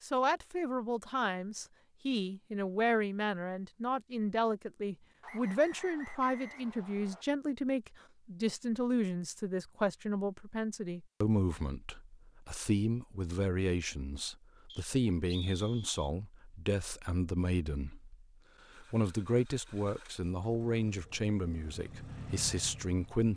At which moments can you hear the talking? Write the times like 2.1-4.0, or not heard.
0.0-23.3.